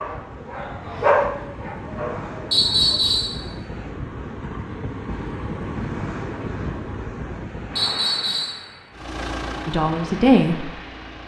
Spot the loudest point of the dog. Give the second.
1 s.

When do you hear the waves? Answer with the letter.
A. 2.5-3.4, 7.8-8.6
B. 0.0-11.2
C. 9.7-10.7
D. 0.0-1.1
B.